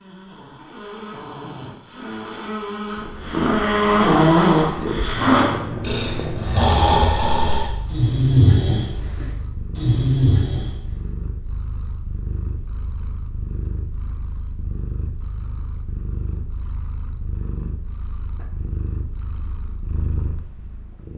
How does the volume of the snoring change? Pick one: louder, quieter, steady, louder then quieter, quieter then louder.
louder.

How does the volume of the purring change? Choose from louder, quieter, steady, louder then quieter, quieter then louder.
quieter.